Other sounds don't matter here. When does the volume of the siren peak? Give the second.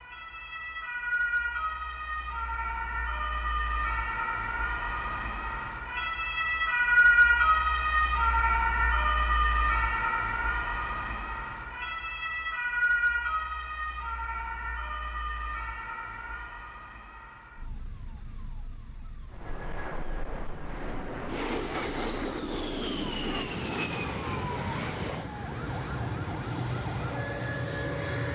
7 s.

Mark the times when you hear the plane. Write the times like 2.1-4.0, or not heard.
19.3-28.3.